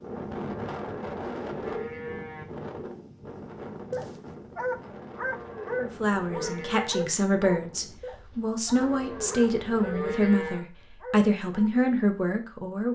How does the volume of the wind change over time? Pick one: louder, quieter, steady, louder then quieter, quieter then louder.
quieter.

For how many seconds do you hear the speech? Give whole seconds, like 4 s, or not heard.
7 s.